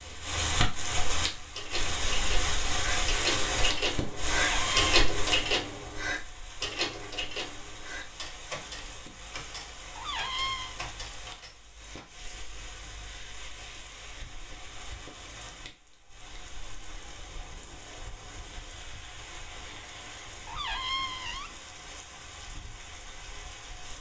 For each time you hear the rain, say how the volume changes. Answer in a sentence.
You can hear the rain from 0.0 to 23.9 s, getting quieter.